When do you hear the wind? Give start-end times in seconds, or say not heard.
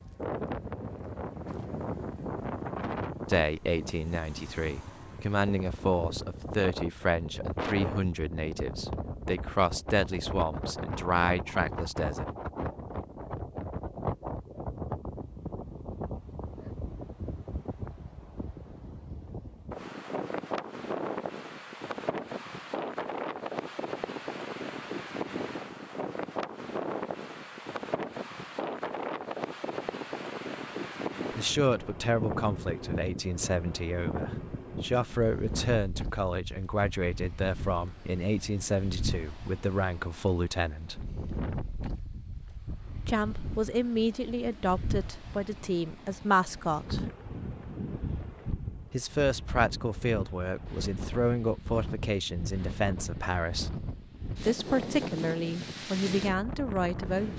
0.0-57.3.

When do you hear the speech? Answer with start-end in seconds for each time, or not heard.
3.2-12.2, 31.3-41.0, 43.0-47.0, 48.9-53.7, 54.4-57.3.